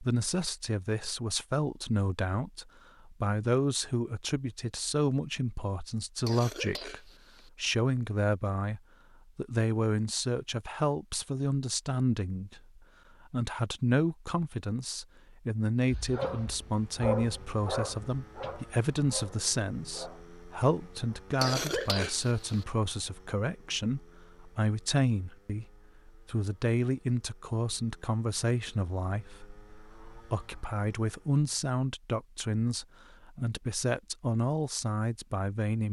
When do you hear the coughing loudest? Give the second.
22 s.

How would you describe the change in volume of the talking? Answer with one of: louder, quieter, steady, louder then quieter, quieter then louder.
steady.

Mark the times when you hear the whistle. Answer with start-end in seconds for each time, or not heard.
not heard.